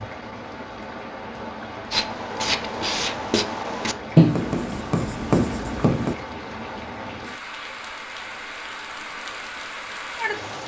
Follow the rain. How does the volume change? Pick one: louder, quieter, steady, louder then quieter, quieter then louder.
steady.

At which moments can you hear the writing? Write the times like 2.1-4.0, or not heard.
1.9-6.2.